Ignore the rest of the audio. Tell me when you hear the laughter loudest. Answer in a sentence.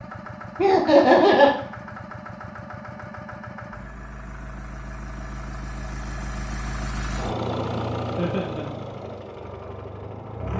The loudest moment of the laughter is at 1 second.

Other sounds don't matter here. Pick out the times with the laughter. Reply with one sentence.
The laughter can be heard from 0.6 to 1.6 s and from 8.2 to 8.7 s.